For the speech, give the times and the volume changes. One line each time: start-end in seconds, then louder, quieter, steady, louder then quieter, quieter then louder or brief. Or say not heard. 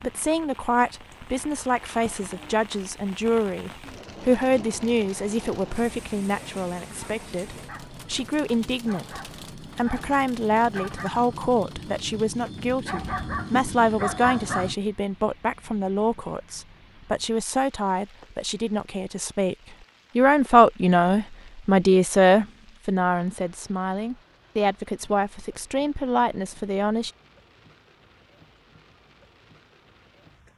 0.0-19.6 steady
20.1-27.1 quieter.